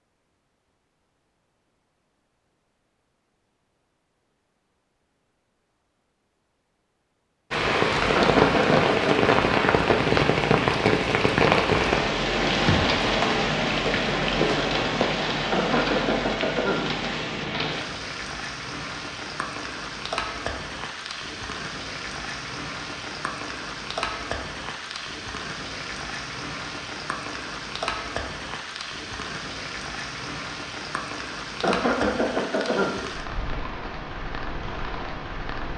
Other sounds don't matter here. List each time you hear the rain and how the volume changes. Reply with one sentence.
You can hear the rain from 7.5 to 35.7 s, getting quieter.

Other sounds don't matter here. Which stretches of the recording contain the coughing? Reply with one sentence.
You can hear the coughing from 8.2 to 9.2 s, from 15.5 to 16.9 s and from 31.6 to 33.0 s.